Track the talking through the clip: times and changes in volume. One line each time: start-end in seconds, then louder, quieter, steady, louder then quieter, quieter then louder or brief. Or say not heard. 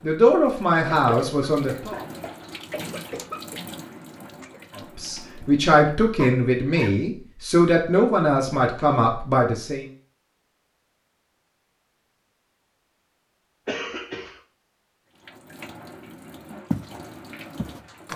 0.0-2.0 brief
4.8-9.8 steady.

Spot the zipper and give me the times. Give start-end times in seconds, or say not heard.
not heard.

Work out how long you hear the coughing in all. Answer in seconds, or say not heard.
4 s.